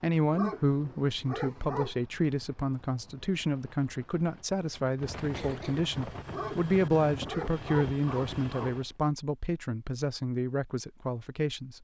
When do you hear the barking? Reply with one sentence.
The barking can be heard from 0.3 to 1.9 s and from 6.3 to 8.8 s.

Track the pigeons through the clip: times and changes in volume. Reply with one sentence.
You can't hear the pigeons here.